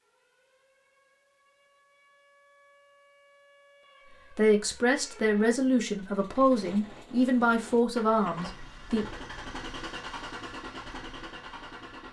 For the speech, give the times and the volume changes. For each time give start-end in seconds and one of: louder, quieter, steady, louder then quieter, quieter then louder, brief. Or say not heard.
4.3-9.1 steady.